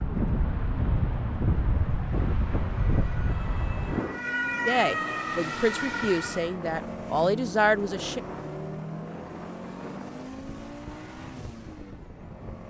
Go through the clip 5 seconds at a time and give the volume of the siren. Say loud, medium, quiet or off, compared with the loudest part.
loud, loud, off.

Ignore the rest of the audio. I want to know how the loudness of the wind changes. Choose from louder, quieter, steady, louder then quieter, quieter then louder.
quieter.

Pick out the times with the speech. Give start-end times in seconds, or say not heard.
4.7-8.2.